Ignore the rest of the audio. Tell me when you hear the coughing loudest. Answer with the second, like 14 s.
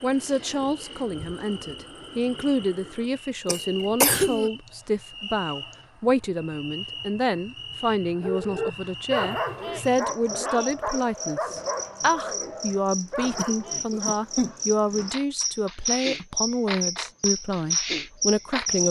4 s.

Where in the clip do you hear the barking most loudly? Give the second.
9 s.